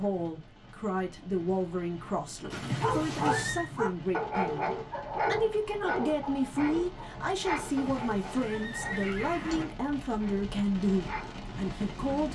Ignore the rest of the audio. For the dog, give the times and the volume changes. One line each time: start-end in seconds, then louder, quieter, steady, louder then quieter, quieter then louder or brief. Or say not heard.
2.4-11.3 quieter.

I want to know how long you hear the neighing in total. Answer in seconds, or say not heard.
3 s.